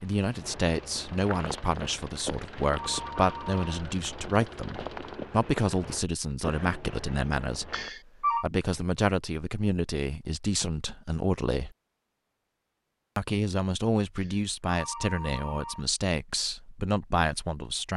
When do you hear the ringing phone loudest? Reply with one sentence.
The loudest moment of the ringing phone is at 8 seconds.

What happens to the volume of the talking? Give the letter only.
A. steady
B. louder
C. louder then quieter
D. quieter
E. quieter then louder
A.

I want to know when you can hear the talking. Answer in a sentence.
The talking can be heard from 0.0 to 11.8 s and from 13.2 to 17.9 s.